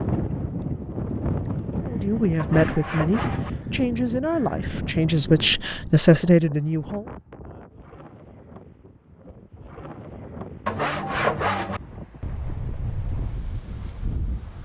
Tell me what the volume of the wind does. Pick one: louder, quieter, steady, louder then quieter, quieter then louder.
quieter then louder.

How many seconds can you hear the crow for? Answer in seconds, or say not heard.
not heard.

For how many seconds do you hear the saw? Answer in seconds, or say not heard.
2 s.